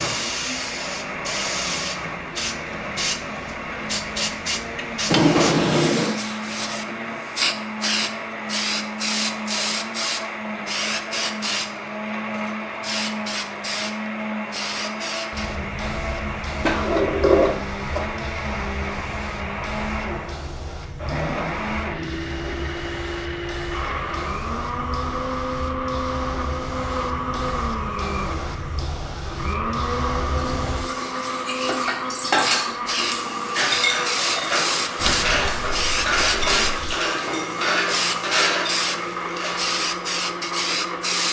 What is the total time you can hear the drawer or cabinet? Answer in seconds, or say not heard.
4 s.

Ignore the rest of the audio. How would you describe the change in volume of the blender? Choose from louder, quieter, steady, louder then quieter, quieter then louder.
steady.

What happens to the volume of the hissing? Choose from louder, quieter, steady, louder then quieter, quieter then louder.
quieter then louder.